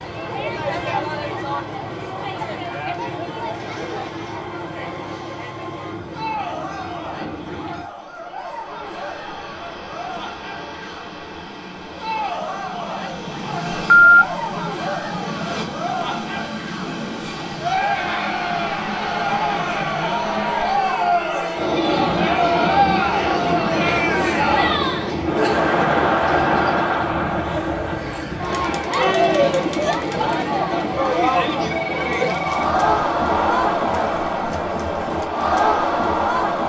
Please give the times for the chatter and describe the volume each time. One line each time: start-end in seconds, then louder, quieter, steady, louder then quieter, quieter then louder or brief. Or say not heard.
0.0-36.6 louder.